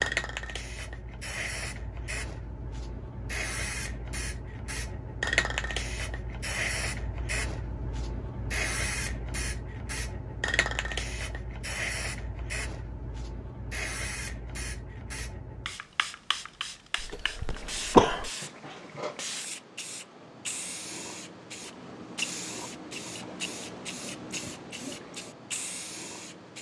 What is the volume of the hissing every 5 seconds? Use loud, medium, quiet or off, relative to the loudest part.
loud, loud, loud, medium, medium, medium.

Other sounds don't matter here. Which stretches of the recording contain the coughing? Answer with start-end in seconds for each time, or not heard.
16.9-18.3.